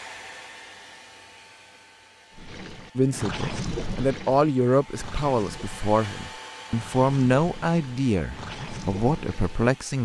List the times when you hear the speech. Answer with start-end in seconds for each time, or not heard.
3.0-10.0.